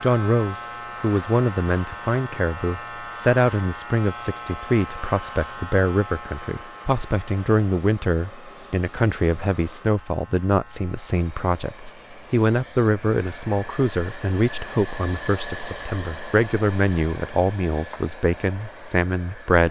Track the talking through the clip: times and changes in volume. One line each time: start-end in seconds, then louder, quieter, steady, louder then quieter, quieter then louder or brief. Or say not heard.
0.0-19.6 steady.